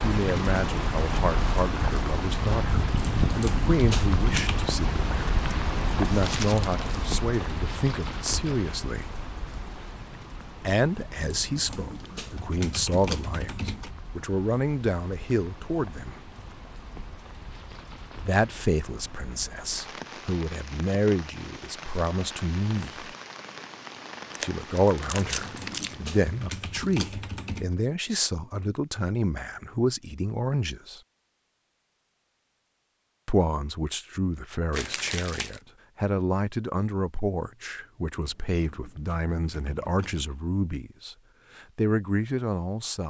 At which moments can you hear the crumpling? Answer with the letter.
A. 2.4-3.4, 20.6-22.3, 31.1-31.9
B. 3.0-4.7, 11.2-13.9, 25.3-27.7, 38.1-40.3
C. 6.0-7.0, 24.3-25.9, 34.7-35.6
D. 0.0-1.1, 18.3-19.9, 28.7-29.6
C.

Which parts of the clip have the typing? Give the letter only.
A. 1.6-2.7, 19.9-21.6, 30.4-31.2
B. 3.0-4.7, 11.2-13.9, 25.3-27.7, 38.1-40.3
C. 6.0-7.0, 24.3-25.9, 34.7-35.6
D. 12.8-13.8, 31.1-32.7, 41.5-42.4
B.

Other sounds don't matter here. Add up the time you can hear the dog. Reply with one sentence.
The dog can't be heard in this clip.